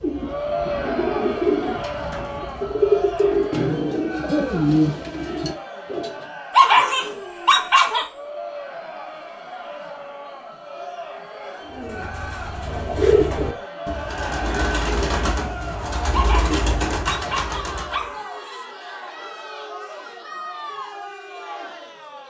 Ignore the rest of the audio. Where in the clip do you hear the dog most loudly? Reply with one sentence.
The loudest moment of the dog is at 7 seconds.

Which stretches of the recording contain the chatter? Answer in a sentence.
You can hear the chatter from 0.1 to 22.2 s.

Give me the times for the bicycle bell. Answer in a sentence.
The bicycle bell can't be heard in this clip.